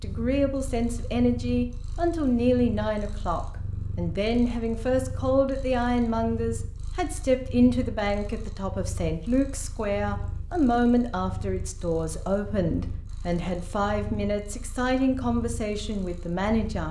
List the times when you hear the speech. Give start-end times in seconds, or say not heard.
0.0-16.8.